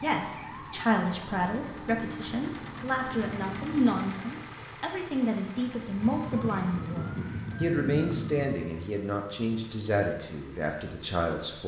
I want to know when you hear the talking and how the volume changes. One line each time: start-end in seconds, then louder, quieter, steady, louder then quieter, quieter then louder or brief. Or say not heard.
0.0-11.6 steady.